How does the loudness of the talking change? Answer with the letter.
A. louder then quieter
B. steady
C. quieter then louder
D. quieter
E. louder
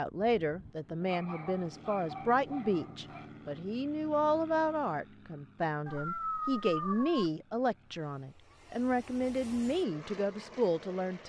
B.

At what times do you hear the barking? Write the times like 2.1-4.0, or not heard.
1.0-3.3, 5.8-7.3.